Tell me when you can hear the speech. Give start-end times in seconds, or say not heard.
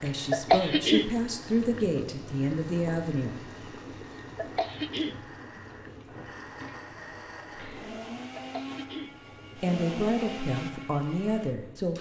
0.0-3.4, 9.6-11.9.